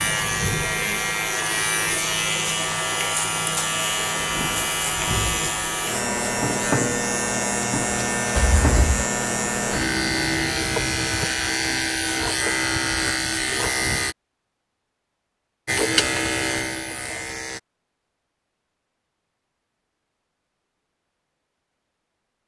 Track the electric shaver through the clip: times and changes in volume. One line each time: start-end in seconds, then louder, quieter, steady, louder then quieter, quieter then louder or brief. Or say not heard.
0.0-14.2 steady
15.7-17.6 brief.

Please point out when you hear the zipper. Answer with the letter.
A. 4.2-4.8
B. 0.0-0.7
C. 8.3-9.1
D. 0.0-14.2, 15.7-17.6
C.